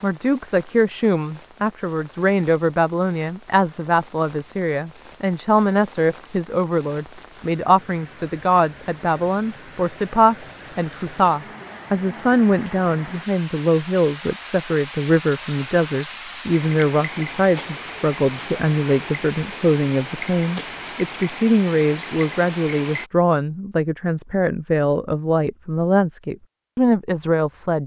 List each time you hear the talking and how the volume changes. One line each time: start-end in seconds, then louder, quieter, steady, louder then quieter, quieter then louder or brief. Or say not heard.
0.0-27.8 steady.